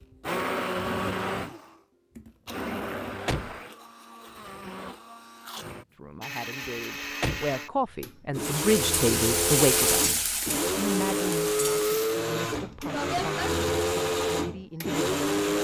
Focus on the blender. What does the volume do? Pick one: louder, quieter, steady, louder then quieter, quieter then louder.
quieter then louder.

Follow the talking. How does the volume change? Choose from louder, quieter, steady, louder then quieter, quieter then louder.
louder then quieter.